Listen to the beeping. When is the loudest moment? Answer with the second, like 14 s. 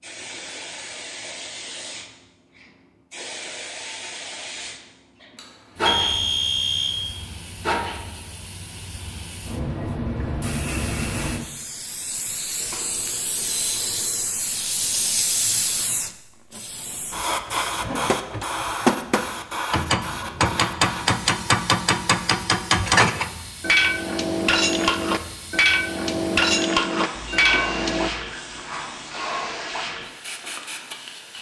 6 s.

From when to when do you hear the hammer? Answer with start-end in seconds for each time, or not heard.
18.1-28.1.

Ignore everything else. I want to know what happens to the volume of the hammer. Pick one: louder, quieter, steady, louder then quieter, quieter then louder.
steady.